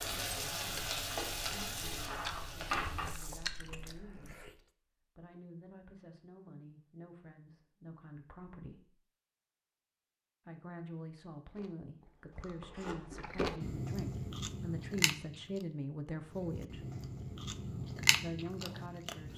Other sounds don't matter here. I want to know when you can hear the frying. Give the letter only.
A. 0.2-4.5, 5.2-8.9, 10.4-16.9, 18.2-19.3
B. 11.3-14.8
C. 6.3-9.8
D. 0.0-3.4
D.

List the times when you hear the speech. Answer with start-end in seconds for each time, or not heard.
0.2-4.5, 5.2-8.9, 10.4-16.9, 18.2-19.3.